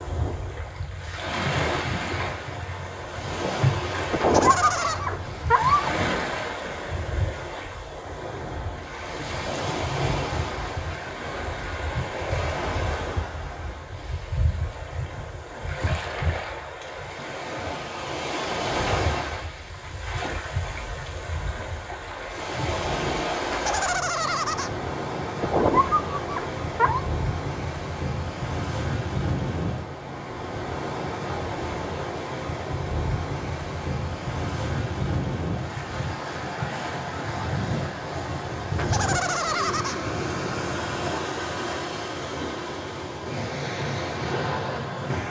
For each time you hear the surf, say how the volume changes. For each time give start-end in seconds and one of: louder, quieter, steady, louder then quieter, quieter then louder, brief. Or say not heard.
0.0-45.2 steady.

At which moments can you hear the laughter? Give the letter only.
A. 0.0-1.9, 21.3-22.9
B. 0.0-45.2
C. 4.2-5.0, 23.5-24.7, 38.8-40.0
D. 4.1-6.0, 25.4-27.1
C.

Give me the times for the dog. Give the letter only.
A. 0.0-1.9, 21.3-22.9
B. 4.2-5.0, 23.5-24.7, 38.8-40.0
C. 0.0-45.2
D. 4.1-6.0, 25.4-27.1
D.